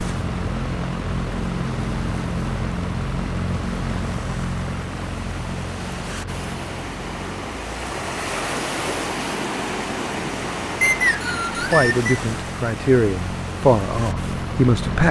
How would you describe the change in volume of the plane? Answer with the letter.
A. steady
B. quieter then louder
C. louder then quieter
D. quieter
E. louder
B.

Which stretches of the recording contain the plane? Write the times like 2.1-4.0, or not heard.
0.0-15.0.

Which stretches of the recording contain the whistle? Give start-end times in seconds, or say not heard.
10.8-12.1.